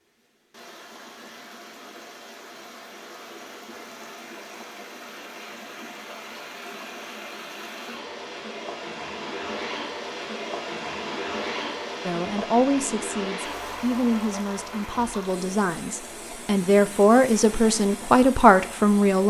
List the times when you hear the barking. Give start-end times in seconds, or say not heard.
not heard.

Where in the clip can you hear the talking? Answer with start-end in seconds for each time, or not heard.
12.1-19.2.